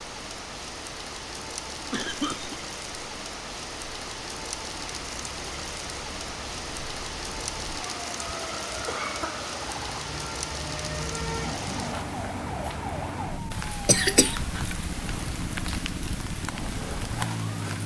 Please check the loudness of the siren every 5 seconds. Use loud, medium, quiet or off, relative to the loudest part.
quiet, medium, loud, loud.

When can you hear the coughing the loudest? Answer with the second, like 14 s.
14 s.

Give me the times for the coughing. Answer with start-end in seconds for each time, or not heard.
1.9-2.6, 8.7-9.4, 13.8-14.3.